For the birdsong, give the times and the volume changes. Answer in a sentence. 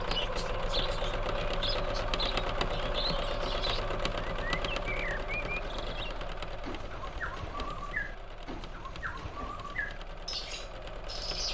You can hear the birdsong from 0.0 to 11.4 s, at a steady volume.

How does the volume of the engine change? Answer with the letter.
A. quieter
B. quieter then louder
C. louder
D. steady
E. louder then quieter
A.